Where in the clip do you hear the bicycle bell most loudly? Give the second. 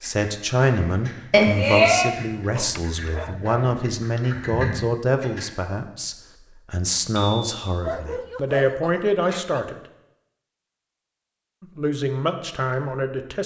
2 s.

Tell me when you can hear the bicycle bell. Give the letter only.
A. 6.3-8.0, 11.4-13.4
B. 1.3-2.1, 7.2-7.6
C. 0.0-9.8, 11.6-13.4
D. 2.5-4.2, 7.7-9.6
B.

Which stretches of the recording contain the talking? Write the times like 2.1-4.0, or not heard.
0.0-9.8, 11.6-13.4.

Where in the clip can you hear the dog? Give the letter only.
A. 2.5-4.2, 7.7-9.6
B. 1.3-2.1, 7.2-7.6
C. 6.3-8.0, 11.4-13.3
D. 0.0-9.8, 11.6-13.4
A.